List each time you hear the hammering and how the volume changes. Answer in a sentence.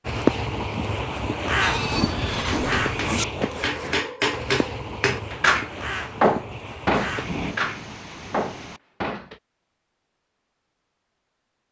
You can hear the hammering from 2.5 to 9.4 s, getting louder then quieter.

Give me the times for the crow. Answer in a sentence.
You can hear the crow from 0.1 to 7.5 s.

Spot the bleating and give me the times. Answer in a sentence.
You can hear the bleating from 1.6 to 3.2 s.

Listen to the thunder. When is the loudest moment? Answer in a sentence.
The volume of the thunder peaks at 7 seconds.